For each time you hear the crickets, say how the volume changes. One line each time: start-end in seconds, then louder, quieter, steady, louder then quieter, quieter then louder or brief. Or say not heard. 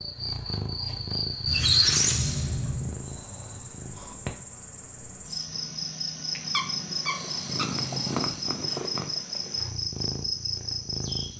0.0-11.3 quieter then louder.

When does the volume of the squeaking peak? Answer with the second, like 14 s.
2 s.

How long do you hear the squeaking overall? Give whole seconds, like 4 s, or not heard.
3 s.